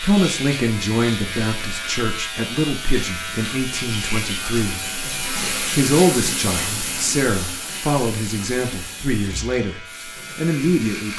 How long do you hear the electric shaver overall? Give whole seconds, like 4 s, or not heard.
11 s.